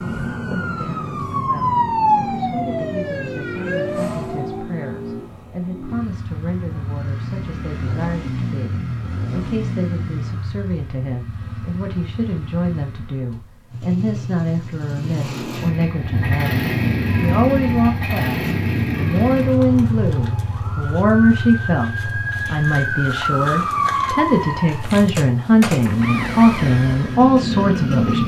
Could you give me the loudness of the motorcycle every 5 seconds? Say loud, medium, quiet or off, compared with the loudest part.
medium, medium, medium, loud, medium, loud.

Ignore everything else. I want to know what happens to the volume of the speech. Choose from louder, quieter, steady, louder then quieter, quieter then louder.
louder.